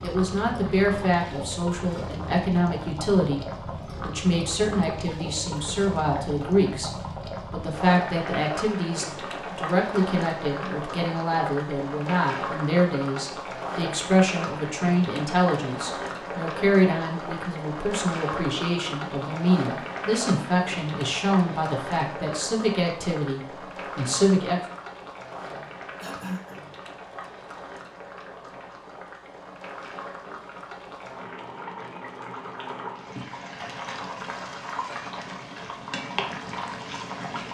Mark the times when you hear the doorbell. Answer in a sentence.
The doorbell can't be heard in this clip.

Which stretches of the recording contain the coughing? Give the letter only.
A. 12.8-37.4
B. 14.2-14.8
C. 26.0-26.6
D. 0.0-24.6
C.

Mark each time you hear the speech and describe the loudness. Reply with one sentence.
The speech can be heard from 0.0 to 24.6 s, at a steady volume.